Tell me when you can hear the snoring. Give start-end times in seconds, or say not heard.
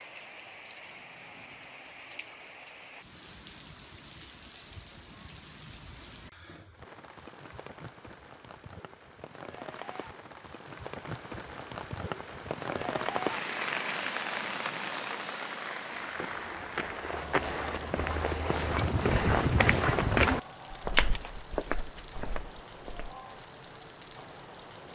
not heard.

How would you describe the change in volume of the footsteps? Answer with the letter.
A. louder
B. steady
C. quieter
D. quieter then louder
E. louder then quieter
E.